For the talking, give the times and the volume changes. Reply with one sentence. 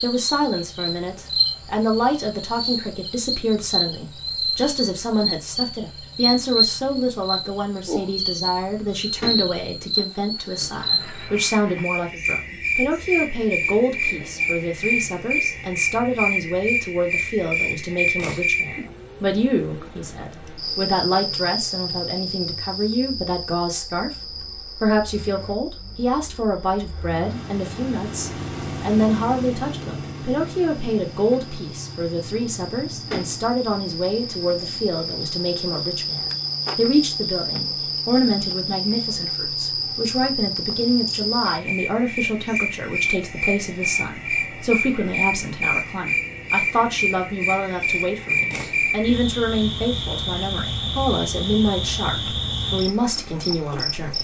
The talking can be heard from 0.0 to 24.1 s, at a steady volume; and from 24.8 to 54.1 s, at a steady volume.